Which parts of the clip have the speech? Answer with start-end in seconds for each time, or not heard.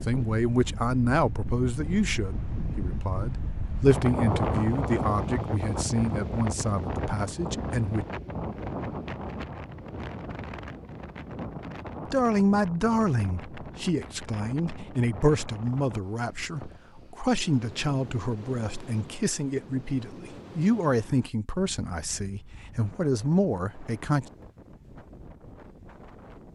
0.0-8.1, 12.1-24.3.